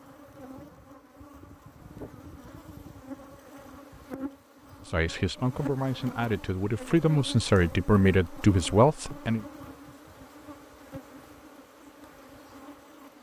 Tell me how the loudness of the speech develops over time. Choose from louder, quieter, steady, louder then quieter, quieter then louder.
louder.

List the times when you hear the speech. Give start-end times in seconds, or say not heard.
4.8-9.4.